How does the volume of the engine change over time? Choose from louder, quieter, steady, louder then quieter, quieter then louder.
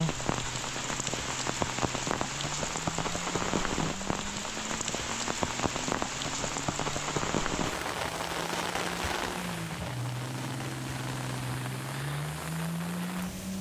louder.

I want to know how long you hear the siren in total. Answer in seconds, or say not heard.
not heard.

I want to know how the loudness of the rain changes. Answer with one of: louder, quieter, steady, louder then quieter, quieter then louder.
quieter.